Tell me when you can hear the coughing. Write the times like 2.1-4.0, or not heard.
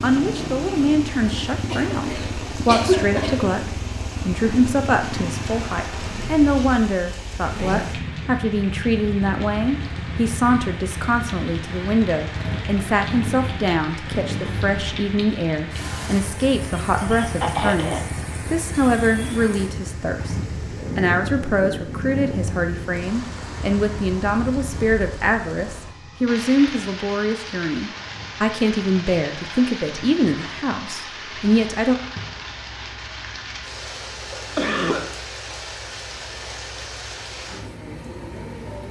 1.7-3.5, 16.7-18.1, 33.8-35.1.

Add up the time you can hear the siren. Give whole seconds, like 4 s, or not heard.
not heard.